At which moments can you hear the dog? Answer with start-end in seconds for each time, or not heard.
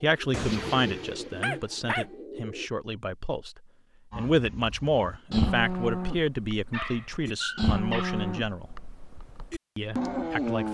0.3-2.0, 6.7-8.2.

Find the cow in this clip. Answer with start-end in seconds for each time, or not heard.
4.1-10.6.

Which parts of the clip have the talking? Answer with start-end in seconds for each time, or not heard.
0.0-8.7, 9.8-10.6.